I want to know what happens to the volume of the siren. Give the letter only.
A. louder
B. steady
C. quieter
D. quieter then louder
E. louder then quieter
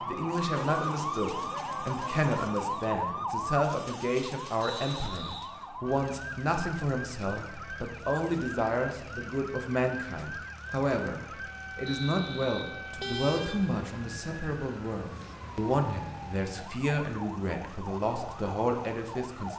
C.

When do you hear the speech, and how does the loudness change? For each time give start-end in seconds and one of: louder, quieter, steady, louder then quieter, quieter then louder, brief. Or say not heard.
0.1-19.5 steady.